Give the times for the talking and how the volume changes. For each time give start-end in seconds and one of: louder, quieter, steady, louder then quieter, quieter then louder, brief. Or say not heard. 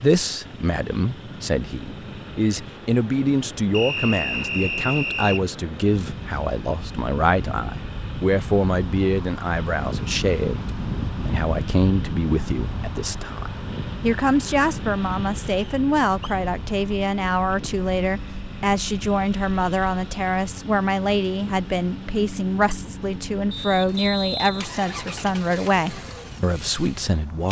0.0-27.4 steady.